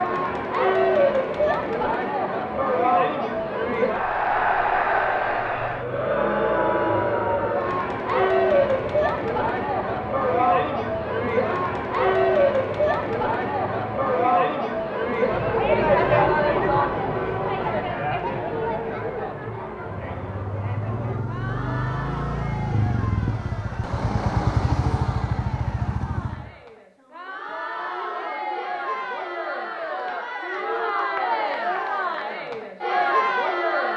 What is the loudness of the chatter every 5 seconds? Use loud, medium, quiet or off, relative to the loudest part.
loud, loud, loud, loud, quiet, medium, loud.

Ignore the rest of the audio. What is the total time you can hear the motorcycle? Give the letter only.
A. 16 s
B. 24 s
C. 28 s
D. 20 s
A.